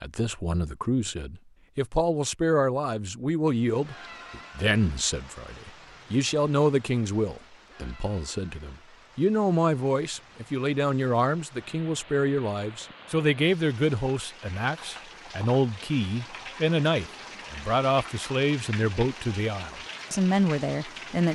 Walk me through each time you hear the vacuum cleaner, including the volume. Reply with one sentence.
You can't hear the vacuum cleaner here.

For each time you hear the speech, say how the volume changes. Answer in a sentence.
You can hear the speech from 0.0 to 21.3 s, at a steady volume.